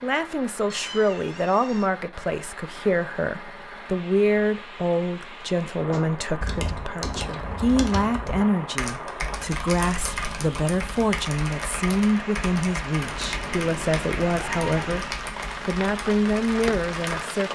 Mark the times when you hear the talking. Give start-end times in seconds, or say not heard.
0.0-17.5.